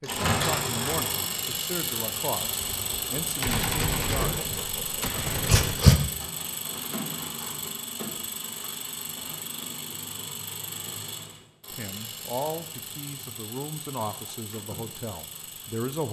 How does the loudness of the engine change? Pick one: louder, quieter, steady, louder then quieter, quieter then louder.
quieter.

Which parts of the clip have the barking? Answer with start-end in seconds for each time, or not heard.
4.2-6.0.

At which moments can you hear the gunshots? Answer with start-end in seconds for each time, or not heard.
2.4-5.8.